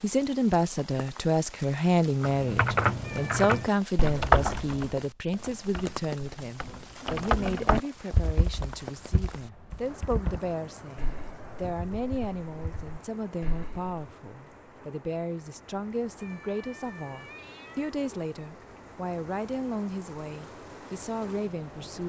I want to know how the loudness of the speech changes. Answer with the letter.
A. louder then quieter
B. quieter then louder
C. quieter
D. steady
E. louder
C.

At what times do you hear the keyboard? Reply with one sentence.
The keyboard can be heard from 2.2 to 13.9 s.